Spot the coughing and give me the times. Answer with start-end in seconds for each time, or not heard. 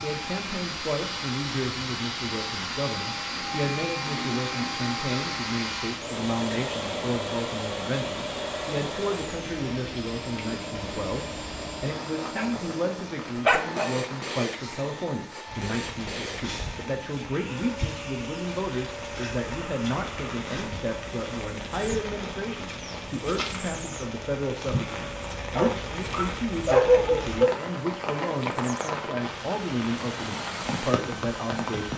not heard.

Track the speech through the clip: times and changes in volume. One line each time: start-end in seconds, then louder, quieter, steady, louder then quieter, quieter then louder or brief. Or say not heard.
0.0-31.9 steady.